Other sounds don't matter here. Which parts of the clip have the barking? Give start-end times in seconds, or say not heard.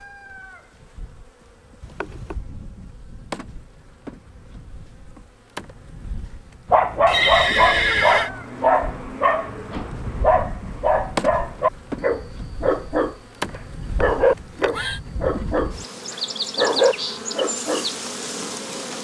6.7-17.9.